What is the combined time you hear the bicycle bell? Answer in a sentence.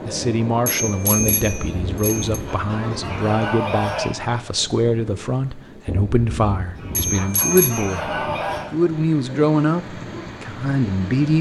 The bicycle bell can be heard for 3 seconds in total.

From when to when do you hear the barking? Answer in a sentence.
The barking can't be heard in this clip.